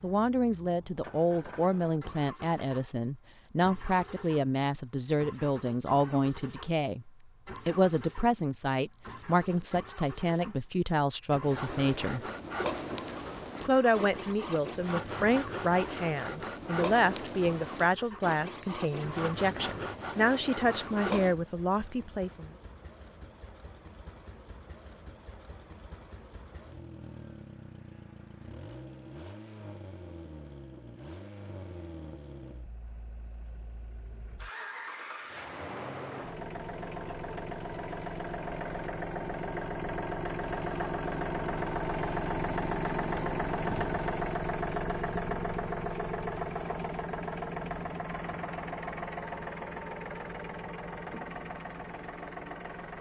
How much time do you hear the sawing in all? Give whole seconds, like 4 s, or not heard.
10 s.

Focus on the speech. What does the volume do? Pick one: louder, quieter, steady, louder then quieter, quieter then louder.
steady.